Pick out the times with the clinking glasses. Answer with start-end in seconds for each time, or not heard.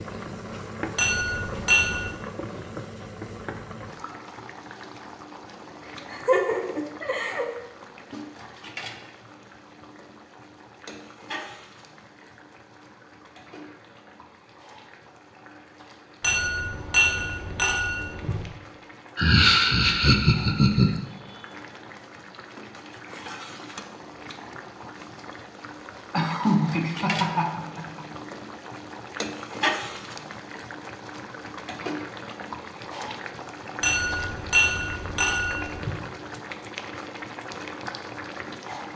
0.9-2.1, 16.2-18.4, 33.8-36.0.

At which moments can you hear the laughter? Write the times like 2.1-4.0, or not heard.
6.0-7.5, 19.1-21.0, 26.1-28.1.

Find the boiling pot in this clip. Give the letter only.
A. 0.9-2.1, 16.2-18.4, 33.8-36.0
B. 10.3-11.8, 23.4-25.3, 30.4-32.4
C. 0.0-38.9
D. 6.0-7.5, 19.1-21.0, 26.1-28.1
C.